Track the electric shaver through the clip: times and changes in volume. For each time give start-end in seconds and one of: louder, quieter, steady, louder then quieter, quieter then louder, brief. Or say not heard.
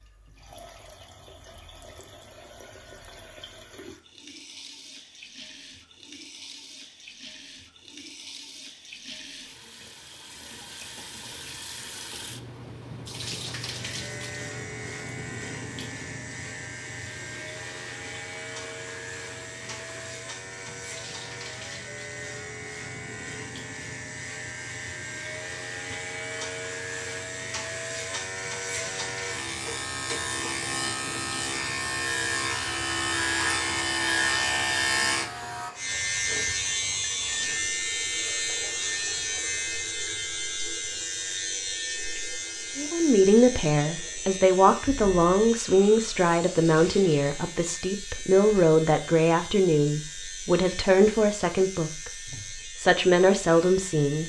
13.6-54.2 louder then quieter.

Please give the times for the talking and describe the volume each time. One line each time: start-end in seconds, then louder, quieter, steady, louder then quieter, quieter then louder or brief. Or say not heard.
42.8-54.2 steady.